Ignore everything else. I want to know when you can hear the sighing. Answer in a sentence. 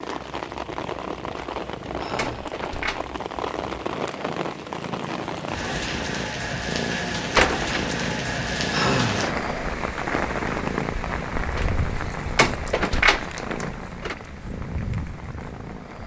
You can hear the sighing from 1.9 to 2.5 s and from 8.7 to 9.3 s.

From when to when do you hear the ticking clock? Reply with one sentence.
You can't hear the ticking clock here.